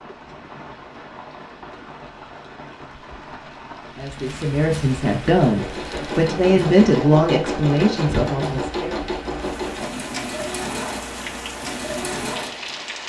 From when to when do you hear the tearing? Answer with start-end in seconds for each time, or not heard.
not heard.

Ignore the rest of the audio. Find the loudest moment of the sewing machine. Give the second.
8 s.